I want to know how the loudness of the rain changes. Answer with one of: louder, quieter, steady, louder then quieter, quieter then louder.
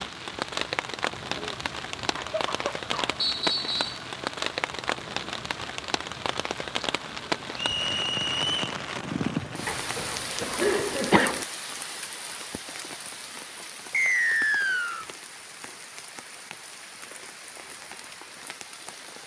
quieter.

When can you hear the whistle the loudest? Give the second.
14 s.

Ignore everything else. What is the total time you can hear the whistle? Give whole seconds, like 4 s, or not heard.
3 s.